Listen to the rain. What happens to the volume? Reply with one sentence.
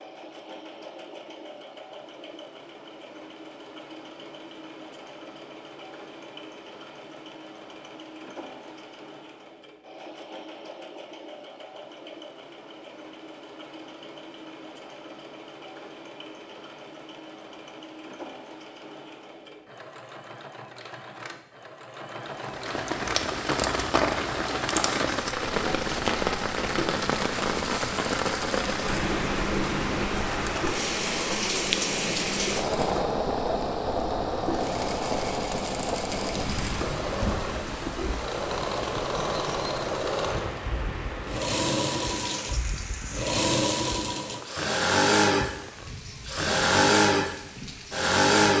The loudness of the rain goes down.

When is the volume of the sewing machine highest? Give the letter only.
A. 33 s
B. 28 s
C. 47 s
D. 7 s
C.